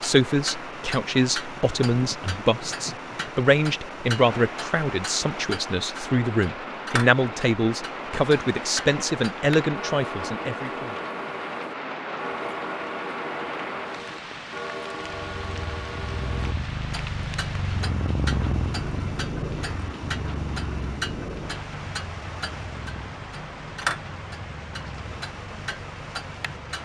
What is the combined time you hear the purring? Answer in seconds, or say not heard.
12 s.